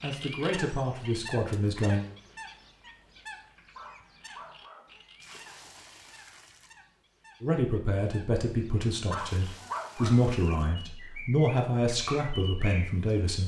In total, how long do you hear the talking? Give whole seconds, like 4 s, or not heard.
8 s.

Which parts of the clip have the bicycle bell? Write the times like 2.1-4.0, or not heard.
not heard.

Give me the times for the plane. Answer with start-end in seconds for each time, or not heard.
not heard.